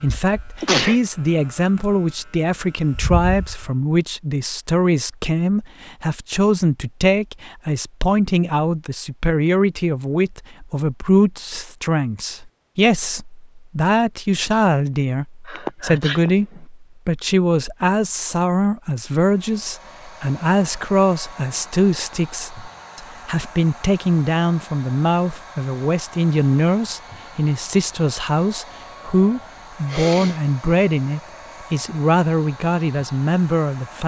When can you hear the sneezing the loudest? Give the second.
1 s.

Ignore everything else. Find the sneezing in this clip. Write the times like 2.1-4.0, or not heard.
0.6-1.0, 15.4-16.6, 29.9-30.4.